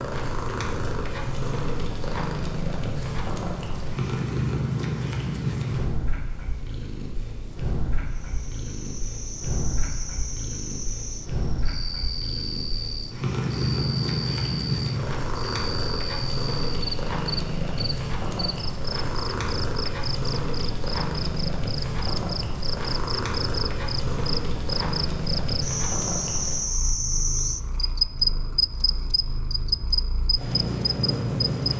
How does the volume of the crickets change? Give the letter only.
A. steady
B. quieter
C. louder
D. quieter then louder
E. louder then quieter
C.